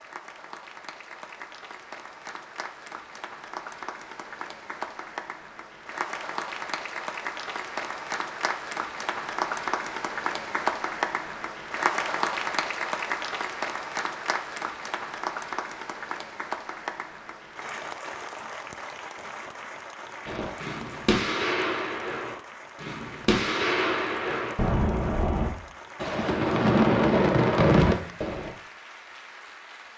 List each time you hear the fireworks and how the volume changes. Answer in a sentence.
The fireworks can be heard from 20.2 to 28.5 s, getting louder.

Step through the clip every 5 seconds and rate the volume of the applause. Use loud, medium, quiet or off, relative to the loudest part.
medium, loud, loud, medium, quiet, quiet.